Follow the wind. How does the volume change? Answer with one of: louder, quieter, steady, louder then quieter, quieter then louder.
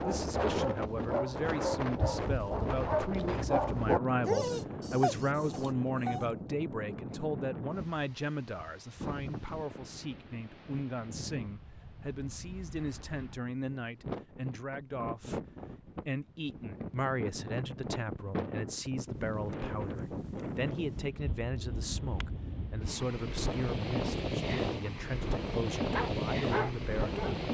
quieter then louder.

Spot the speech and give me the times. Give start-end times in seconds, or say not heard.
0.0-15.4, 16.1-27.2.